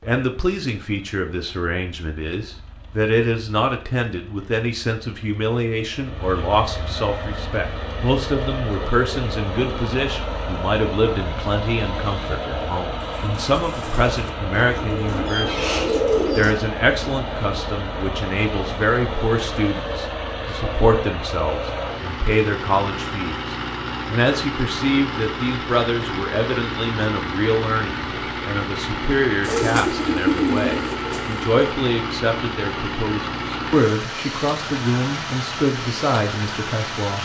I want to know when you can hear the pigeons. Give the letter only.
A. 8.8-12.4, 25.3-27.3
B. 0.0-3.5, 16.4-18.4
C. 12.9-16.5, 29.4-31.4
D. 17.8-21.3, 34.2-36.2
C.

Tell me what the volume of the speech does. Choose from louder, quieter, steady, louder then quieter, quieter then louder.
steady.